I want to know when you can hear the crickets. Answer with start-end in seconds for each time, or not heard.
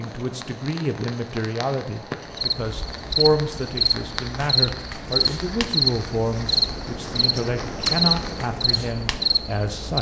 2.4-9.9.